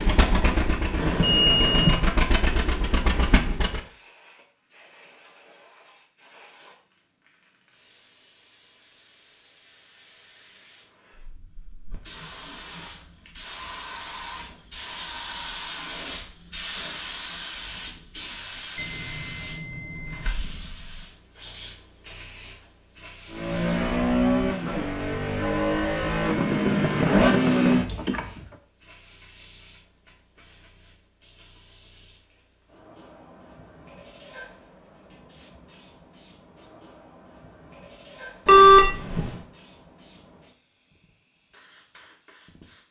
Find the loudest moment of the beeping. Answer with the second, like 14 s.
39 s.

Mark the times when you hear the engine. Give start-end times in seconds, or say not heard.
0.0-3.8, 23.3-28.4.